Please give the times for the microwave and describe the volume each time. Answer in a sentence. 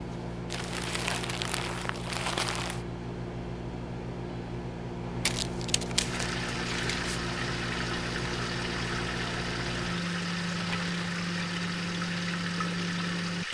The microwave can be heard from 0.0 to 13.5 s, at a steady volume.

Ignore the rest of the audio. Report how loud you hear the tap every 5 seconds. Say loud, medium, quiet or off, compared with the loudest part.
off, loud, loud.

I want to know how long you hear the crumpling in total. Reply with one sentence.
The crumpling can be heard for 5 seconds in total.